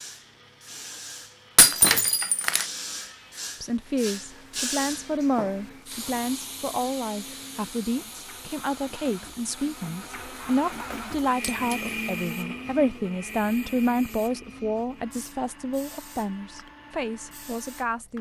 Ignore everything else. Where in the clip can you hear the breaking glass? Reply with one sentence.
The breaking glass can be heard from 1.6 to 2.6 s and from 11.4 to 11.9 s.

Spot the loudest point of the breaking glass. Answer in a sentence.
The volume of the breaking glass peaks at 2 seconds.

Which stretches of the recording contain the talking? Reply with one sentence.
You can hear the talking from 3.6 to 18.1 s.